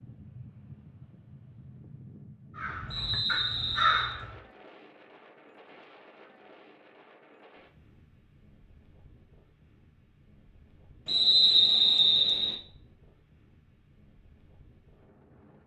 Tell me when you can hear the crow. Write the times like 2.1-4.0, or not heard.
2.5-4.3.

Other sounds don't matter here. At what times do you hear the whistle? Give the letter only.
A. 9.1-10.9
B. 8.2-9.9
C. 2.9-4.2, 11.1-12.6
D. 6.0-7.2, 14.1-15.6
C.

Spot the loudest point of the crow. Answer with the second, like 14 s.
4 s.